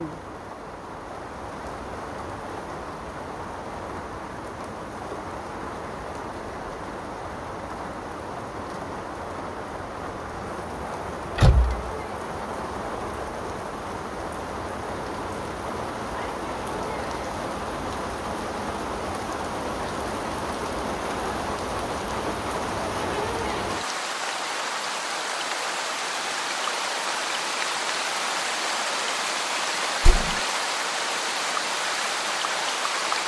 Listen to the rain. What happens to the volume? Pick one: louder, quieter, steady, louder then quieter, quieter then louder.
louder.